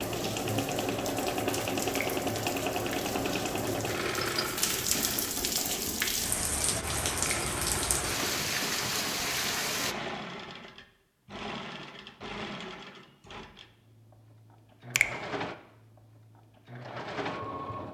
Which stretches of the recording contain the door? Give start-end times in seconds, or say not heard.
not heard.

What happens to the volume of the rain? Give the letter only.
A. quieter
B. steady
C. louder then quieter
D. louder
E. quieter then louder
D.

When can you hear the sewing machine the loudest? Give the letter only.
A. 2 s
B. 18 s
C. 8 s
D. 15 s
A.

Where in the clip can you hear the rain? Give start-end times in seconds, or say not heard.
0.0-9.9.